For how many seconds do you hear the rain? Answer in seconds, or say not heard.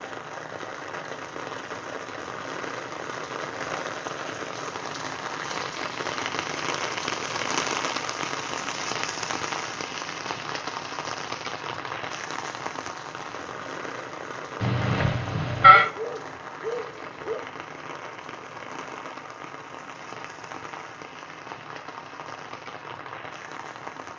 24 s.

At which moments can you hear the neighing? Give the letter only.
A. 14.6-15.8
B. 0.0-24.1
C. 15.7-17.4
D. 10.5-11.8
A.